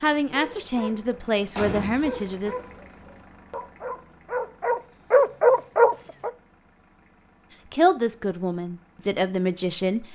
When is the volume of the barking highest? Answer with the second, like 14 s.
5 s.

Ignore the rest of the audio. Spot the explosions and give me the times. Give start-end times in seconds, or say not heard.
1.6-2.2.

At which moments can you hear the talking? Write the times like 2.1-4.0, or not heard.
0.0-2.5, 7.7-10.1.